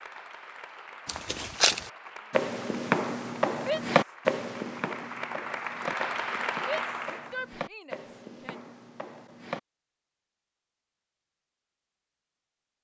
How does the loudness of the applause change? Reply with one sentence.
The loudness of the applause goes up.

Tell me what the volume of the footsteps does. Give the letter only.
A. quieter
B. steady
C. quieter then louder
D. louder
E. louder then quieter
A.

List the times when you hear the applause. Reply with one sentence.
You can hear the applause from 0.0 to 7.4 s.